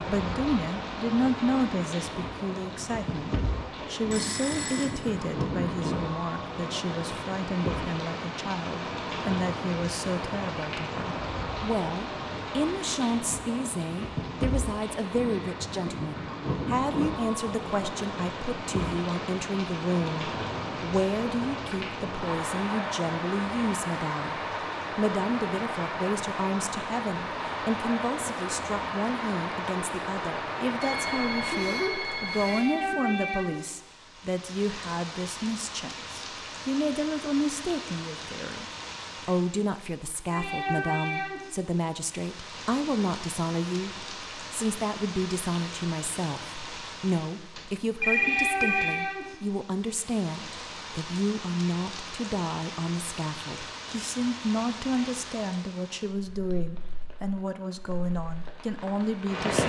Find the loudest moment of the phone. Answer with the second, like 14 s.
48 s.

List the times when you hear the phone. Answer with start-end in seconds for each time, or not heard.
4.1-4.9, 30.8-32.7, 47.5-49.0.